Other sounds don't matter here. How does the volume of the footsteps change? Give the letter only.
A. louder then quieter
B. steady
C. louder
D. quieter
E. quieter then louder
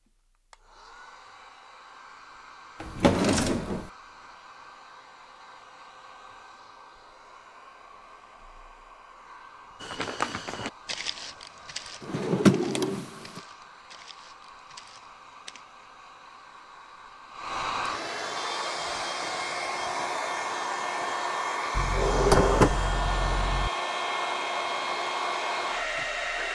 D.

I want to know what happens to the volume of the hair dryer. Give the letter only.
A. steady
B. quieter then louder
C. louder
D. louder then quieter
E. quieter
C.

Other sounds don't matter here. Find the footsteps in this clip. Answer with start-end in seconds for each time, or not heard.
9.8-15.7.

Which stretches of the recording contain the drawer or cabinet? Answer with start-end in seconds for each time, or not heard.
2.8-3.9, 12.0-13.4, 21.8-23.7.